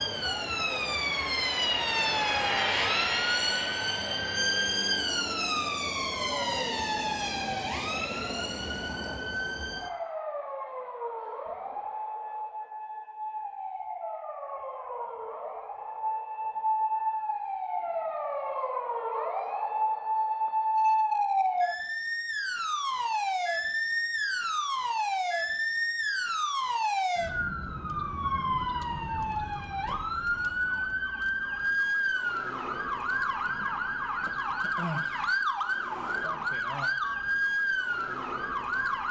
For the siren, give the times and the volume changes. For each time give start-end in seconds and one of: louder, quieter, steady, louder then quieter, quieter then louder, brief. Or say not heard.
0.0-39.0 quieter then louder.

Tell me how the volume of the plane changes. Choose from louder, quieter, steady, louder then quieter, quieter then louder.
louder then quieter.